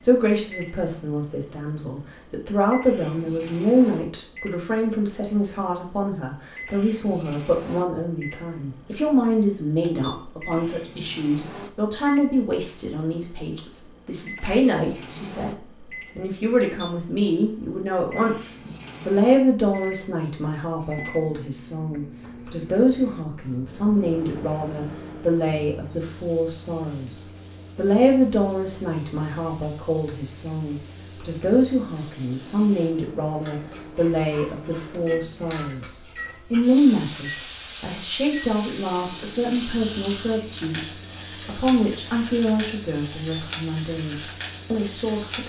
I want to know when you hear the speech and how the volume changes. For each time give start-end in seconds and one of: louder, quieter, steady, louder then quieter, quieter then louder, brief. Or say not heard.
0.0-45.4 steady.